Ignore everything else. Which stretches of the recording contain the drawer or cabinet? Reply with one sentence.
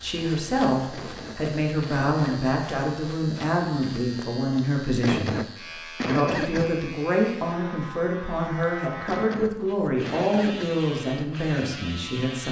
You can't hear the drawer or cabinet here.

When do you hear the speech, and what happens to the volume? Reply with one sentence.
You can hear the speech from 0.0 to 12.4 s, at a steady volume.